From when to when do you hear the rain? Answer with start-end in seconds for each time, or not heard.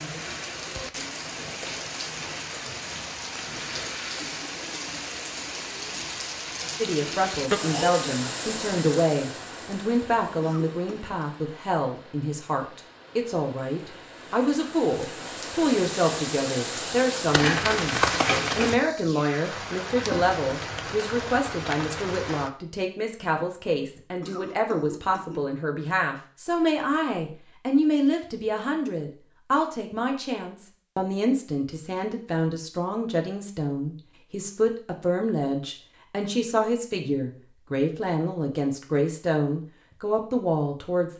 0.0-22.5.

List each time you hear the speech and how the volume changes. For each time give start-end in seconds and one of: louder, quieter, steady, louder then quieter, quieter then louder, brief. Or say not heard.
6.8-41.1 steady.